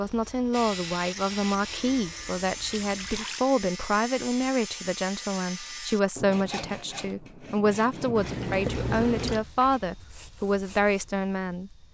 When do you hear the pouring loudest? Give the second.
9 s.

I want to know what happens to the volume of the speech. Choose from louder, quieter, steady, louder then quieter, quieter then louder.
steady.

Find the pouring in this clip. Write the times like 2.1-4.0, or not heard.
2.7-3.5, 8.2-9.4.